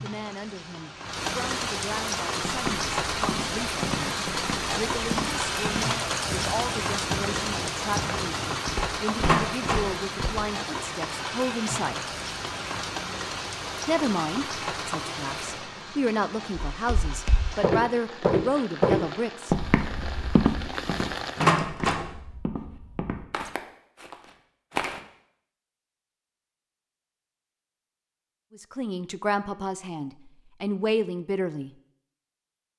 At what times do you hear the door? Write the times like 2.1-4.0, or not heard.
9.2-9.8, 21.4-22.1.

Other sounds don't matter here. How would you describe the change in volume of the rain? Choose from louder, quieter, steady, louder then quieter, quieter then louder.
quieter.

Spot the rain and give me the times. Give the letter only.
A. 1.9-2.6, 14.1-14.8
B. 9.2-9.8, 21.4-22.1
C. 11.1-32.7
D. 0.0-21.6
D.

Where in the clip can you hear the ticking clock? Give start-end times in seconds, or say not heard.
not heard.